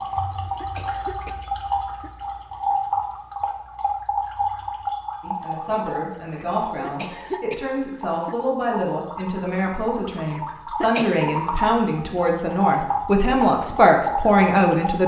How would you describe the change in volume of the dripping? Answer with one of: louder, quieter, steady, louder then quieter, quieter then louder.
quieter then louder.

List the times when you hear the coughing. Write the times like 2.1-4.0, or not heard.
0.1-2.1, 6.3-8.3, 10.3-11.3.